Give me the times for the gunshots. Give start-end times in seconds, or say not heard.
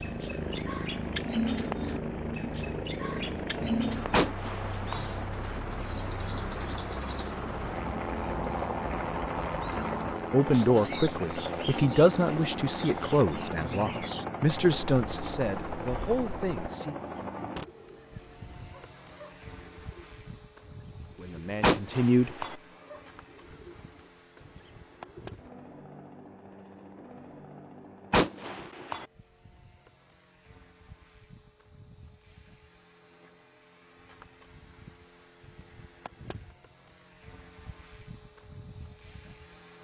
4.1-5.0, 21.6-22.6, 28.1-29.1.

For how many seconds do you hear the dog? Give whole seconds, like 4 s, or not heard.
not heard.